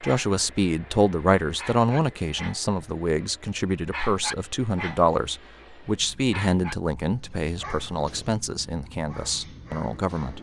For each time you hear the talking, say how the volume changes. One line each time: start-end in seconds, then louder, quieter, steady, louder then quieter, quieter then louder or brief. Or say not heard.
0.0-10.3 quieter.